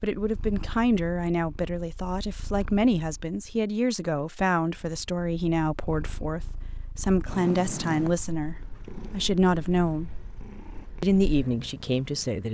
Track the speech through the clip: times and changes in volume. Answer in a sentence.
The speech can be heard from 0.0 to 10.1 s, at a steady volume; and briefly from 11.0 to 12.4 s.